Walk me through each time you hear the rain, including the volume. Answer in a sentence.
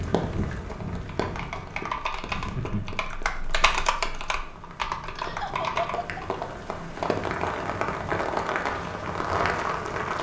You can hear the rain from 0.0 to 10.1 s, getting quieter then louder.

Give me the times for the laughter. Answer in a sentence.
The laughter can be heard from 2.2 to 3.0 s and from 5.2 to 6.2 s.